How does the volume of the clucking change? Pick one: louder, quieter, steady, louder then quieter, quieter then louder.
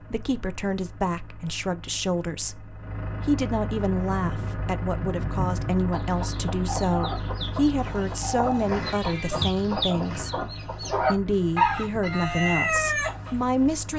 louder.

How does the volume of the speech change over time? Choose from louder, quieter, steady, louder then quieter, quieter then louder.
steady.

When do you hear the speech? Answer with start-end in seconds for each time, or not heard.
0.1-13.9.